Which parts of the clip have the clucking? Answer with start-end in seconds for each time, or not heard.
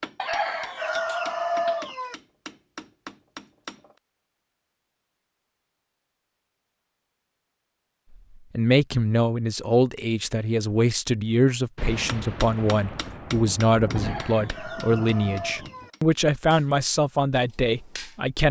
0.1-2.1, 13.9-15.9.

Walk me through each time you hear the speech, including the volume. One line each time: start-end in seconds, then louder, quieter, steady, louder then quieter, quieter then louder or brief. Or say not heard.
8.6-18.4 steady.